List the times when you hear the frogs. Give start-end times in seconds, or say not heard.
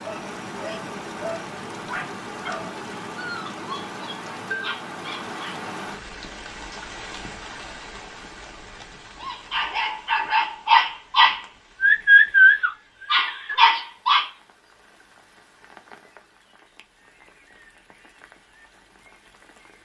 not heard.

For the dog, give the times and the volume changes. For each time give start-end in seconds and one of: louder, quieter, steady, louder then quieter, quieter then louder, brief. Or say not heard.
0.0-5.7 steady
9.2-14.3 louder then quieter.